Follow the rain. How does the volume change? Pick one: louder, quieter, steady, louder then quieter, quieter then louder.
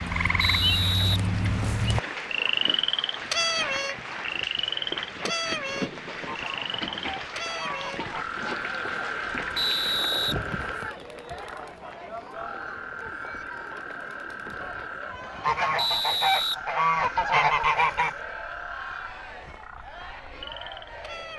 quieter.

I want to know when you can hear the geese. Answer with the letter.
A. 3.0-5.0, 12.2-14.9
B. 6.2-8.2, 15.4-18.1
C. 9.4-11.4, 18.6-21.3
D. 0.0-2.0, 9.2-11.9
B.